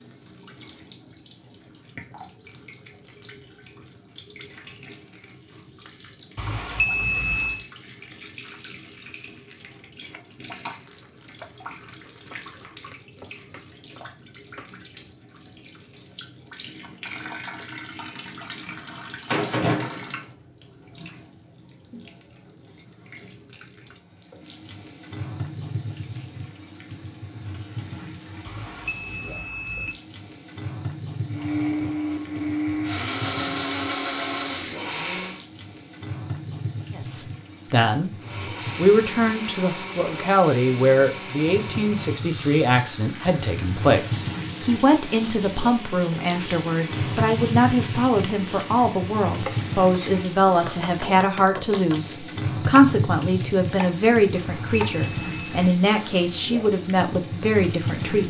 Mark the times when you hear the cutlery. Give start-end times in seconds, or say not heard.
not heard.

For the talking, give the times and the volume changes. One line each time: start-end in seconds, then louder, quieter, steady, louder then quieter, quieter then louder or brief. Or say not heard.
37.0-38.1 brief
38.8-58.2 steady.